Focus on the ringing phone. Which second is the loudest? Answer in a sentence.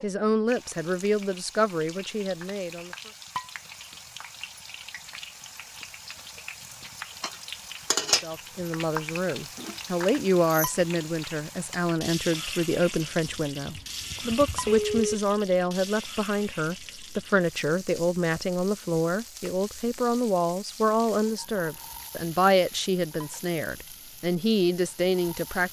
The volume of the ringing phone peaks at 15 seconds.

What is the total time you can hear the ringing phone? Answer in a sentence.
You can hear the ringing phone for 2 seconds altogether.